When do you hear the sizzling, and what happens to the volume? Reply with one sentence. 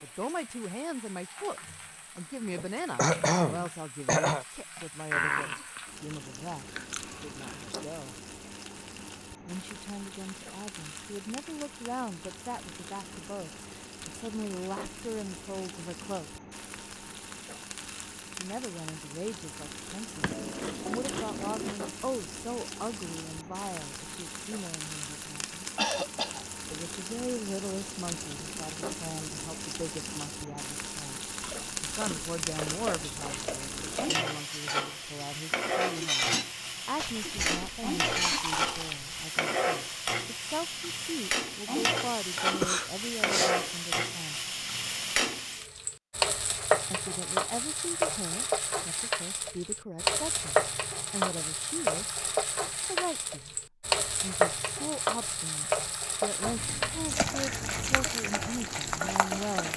The sizzling can be heard from 0.0 to 59.7 s, getting louder.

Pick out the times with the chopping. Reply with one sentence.
You can't hear the chopping here.